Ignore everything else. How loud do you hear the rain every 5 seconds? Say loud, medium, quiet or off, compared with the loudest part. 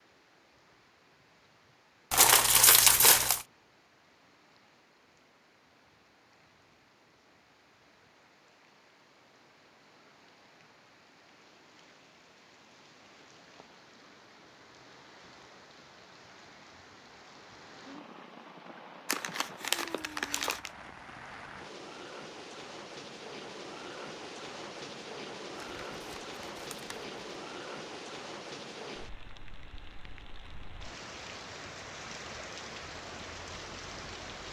quiet, quiet, quiet, medium, loud, loud, loud.